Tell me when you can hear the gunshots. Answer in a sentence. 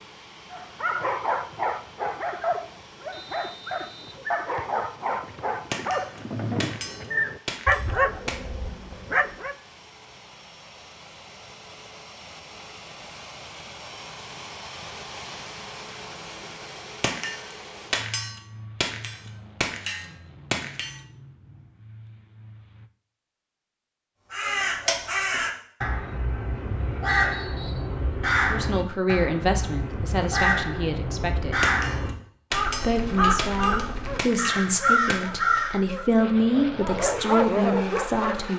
The gunshots can be heard from 5.7 to 8.4 s, from 17.0 to 21.0 s and from 31.6 to 35.4 s.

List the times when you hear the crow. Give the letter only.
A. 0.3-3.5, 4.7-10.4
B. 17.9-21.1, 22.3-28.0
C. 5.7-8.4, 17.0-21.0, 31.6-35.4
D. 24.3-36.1
D.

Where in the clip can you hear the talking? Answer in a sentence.
The talking can be heard from 28.4 to 31.6 s and from 32.8 to 38.5 s.